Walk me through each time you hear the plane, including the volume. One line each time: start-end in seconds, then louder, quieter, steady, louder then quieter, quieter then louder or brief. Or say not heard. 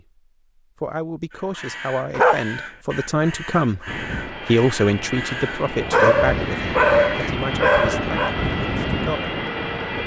3.9-10.0 louder.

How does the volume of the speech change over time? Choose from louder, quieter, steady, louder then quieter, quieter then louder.
louder then quieter.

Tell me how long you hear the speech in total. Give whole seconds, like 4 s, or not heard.
9 s.